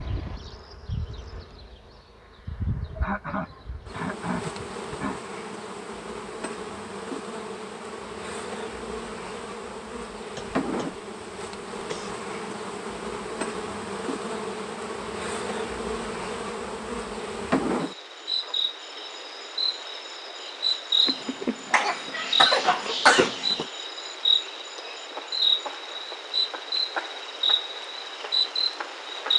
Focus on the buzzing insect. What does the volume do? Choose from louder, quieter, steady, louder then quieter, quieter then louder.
louder.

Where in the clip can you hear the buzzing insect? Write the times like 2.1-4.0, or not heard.
0.0-29.3.